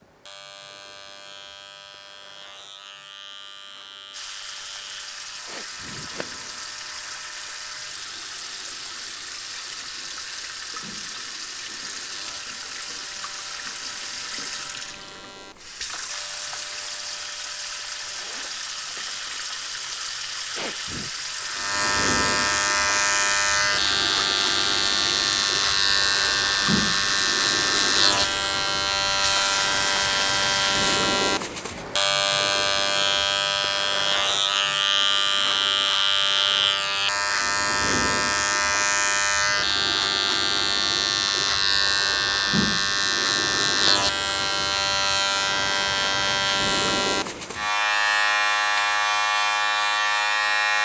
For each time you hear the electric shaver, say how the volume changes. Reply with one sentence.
You can hear the electric shaver from 0.0 to 50.8 s, getting louder.